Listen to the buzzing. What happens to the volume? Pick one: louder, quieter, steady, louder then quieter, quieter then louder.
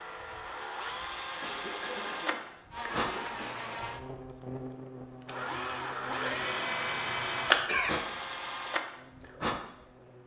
quieter.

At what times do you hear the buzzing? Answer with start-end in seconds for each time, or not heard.
2.7-10.2.